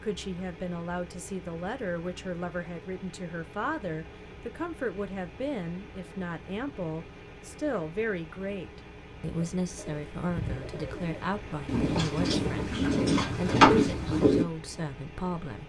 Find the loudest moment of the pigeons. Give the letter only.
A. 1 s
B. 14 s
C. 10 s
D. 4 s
B.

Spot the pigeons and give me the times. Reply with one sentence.
The pigeons can be heard from 9.3 to 14.4 s.